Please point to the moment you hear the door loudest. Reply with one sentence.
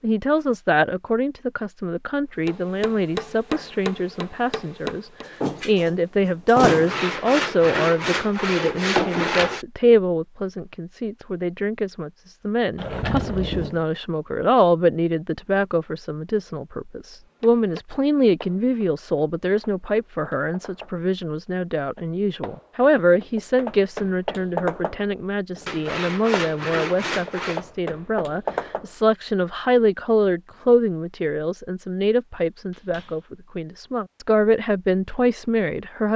The loudest moment of the door is at 7 seconds.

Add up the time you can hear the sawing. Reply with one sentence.
You can hear the sawing for 5 seconds altogether.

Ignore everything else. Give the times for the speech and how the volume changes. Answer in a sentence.
You can hear the speech from 0.0 to 36.1 s, at a steady volume.